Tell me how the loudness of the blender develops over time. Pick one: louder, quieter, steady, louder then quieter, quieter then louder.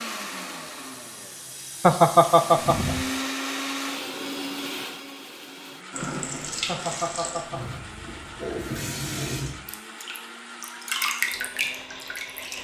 louder then quieter.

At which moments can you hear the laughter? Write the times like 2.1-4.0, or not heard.
1.8-3.0, 6.7-7.9.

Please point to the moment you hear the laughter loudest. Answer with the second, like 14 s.
2 s.